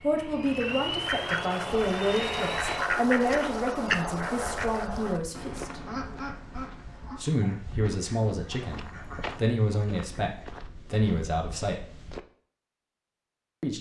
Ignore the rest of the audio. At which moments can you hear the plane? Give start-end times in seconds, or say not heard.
0.0-2.9.